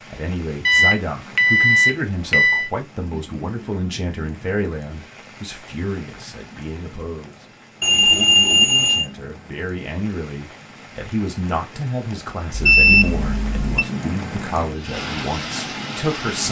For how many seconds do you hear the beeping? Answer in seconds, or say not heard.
5 s.